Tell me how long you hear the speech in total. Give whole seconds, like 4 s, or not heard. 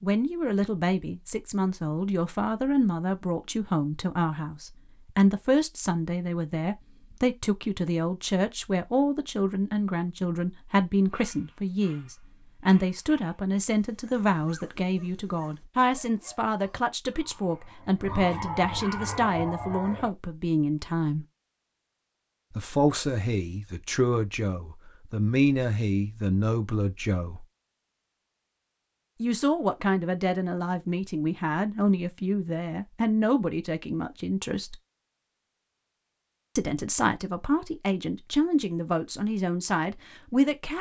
36 s.